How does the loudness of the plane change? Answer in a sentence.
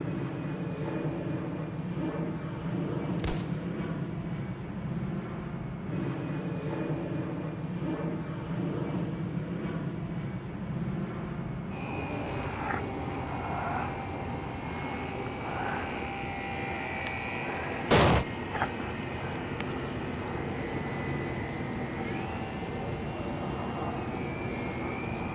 The volume of the plane stays about the same.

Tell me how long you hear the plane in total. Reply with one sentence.
The plane can be heard for 25 seconds in total.